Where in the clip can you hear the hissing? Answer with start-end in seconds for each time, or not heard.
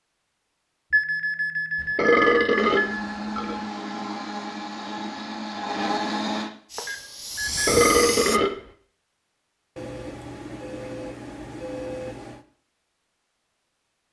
6.7-8.5.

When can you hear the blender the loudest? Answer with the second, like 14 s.
6 s.